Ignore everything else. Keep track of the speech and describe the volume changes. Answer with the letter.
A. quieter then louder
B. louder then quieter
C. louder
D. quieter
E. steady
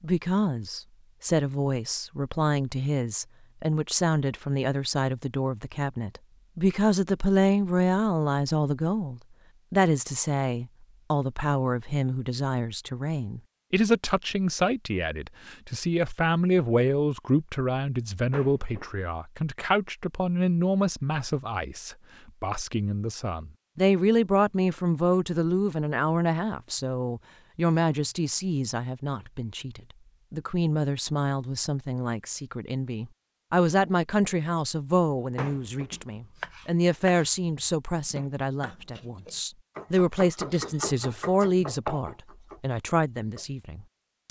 E.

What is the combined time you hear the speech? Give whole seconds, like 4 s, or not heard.
44 s.